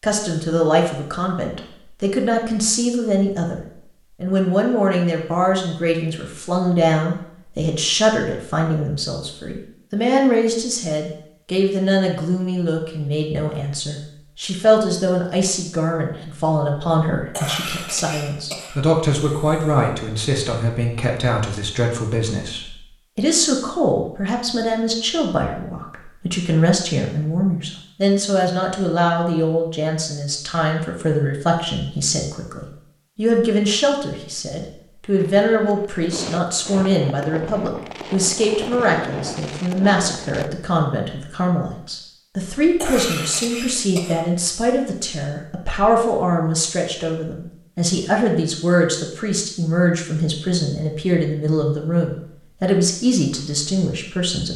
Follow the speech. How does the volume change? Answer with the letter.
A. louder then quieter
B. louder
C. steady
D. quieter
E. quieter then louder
C.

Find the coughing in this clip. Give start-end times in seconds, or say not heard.
17.3-19.9, 42.8-44.2.